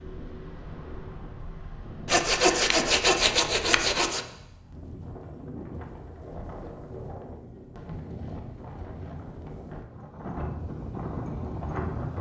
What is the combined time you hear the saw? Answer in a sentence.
The saw can be heard for 2 seconds in total.